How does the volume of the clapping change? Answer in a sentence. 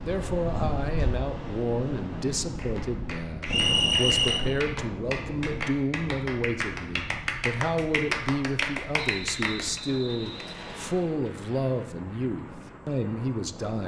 The volume of the clapping goes up.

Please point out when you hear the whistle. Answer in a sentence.
You can hear the whistle from 3.5 to 4.4 s and from 8.9 to 10.9 s.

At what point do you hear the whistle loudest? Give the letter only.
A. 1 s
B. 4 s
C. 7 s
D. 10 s
B.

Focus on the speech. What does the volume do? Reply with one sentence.
The loudness of the speech stays about the same.